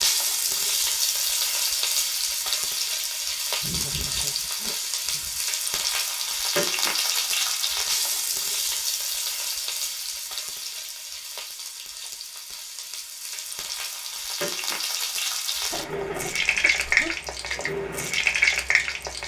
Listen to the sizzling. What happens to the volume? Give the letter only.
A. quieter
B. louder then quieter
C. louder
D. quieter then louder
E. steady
D.